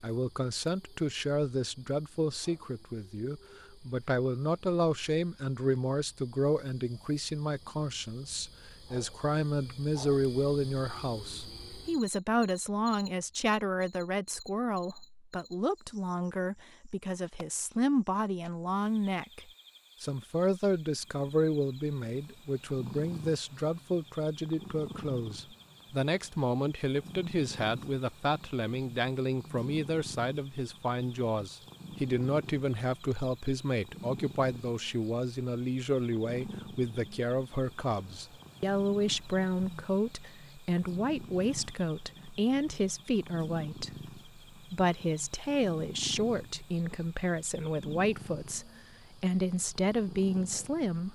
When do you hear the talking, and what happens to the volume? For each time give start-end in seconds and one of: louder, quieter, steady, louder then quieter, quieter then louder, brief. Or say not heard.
0.0-51.1 steady.